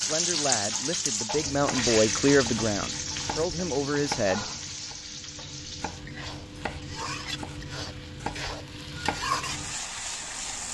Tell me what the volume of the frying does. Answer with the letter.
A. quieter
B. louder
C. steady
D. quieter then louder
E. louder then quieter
D.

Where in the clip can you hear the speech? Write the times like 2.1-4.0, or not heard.
0.0-4.5.